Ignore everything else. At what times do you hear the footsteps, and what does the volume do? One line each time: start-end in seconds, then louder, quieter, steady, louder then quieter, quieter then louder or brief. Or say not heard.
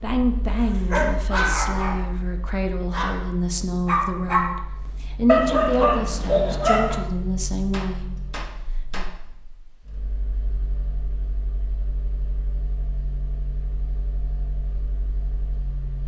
not heard.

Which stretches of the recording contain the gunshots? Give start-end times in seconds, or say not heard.
7.7-9.2.